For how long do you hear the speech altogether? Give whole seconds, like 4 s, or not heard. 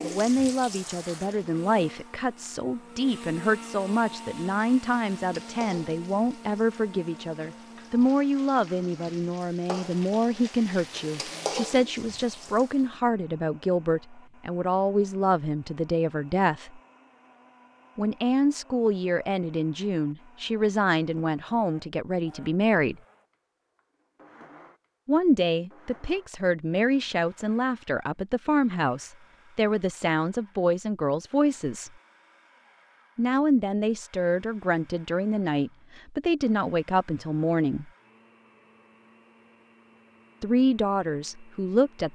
35 s.